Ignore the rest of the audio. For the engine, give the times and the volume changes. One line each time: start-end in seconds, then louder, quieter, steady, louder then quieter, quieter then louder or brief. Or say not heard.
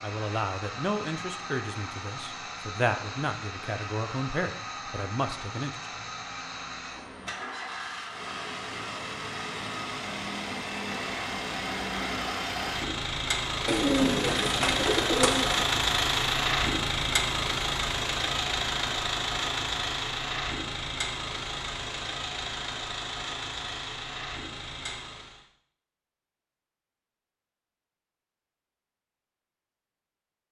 0.0-25.4 louder then quieter.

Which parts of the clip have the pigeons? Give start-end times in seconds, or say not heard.
13.7-15.7.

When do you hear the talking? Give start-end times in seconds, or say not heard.
0.0-6.1.